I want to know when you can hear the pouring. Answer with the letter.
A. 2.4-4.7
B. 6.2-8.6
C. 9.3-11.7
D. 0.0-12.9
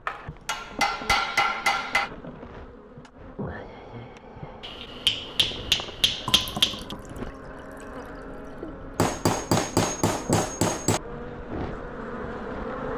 B.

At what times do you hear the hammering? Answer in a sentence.
The hammering can be heard from 0.1 to 2.1 s, from 4.6 to 7.0 s and from 8.9 to 11.0 s.